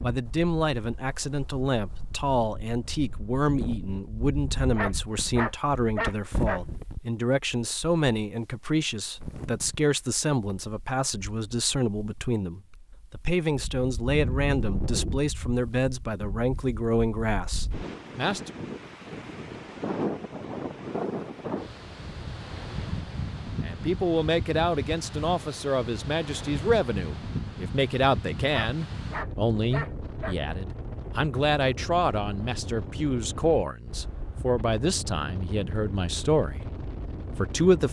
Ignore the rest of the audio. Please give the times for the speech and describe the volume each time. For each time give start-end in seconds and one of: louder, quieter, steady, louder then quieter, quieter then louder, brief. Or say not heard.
0.0-18.6 steady
23.6-36.6 steady
37.4-37.8 brief.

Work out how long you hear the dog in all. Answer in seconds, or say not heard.
4 s.